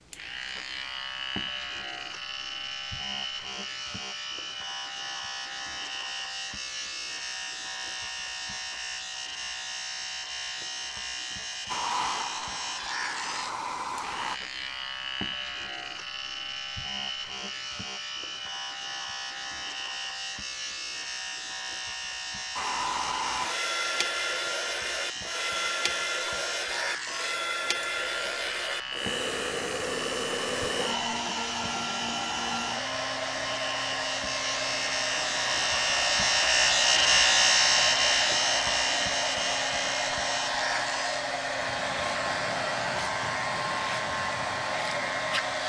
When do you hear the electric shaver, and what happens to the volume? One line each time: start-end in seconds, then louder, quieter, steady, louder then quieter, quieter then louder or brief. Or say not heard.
0.0-45.6 louder.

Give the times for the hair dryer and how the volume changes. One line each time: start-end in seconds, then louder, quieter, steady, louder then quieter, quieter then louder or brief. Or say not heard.
11.7-14.4 brief
22.6-45.6 steady.